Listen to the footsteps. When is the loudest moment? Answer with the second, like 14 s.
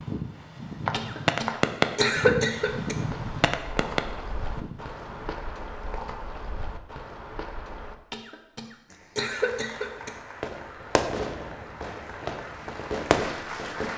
1 s.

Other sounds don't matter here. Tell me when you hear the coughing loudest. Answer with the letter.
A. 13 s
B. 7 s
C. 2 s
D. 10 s
C.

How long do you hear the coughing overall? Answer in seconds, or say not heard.
4 s.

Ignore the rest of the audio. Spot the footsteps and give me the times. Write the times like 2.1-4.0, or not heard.
0.8-8.0.